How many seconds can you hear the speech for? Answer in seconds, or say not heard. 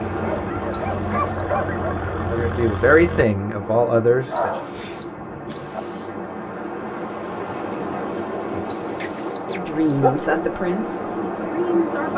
5 s.